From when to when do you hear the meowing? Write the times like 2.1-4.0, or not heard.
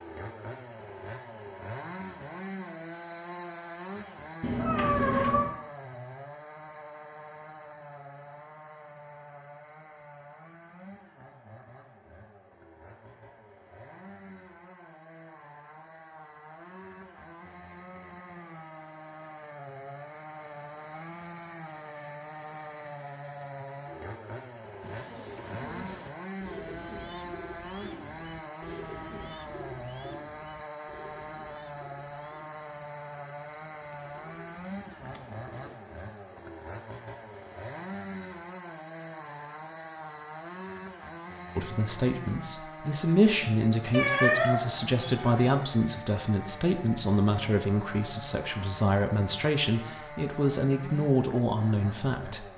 4.4-5.5, 43.9-45.5.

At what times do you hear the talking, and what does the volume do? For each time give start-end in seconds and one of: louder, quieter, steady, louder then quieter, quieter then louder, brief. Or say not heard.
41.5-52.5 steady.